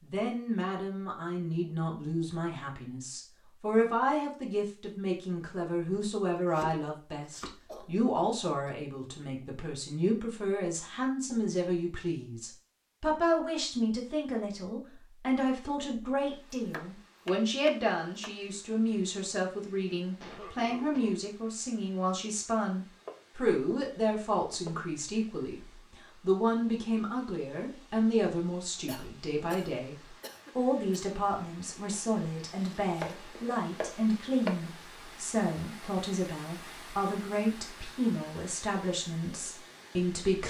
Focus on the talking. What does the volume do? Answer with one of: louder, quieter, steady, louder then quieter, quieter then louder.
steady.